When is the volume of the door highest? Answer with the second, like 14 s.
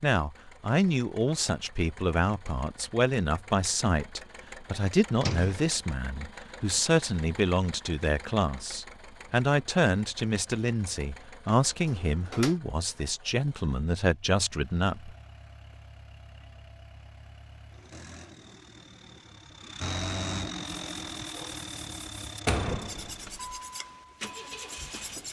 23 s.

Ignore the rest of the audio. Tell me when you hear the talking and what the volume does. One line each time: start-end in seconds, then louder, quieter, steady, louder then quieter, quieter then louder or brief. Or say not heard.
0.0-15.2 steady.